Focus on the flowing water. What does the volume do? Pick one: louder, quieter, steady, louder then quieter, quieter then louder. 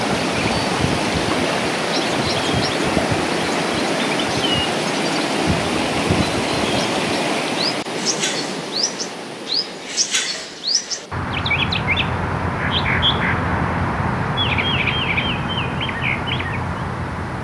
quieter.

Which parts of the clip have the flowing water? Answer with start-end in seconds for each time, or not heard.
0.0-17.3.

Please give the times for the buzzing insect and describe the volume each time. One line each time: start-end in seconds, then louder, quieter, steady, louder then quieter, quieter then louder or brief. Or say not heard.
not heard.